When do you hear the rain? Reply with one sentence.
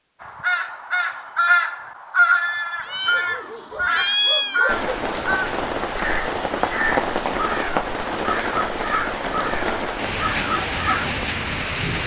You can hear the rain from 4.7 to 12.0 s.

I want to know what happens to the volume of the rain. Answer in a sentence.
The volume of the rain stays about the same.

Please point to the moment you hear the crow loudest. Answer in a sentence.
The loudest moment of the crow is at 2 seconds.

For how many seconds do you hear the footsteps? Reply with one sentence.
You can't hear the footsteps here.